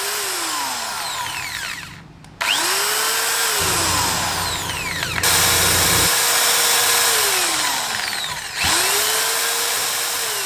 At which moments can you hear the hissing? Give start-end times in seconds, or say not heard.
3.5-6.1.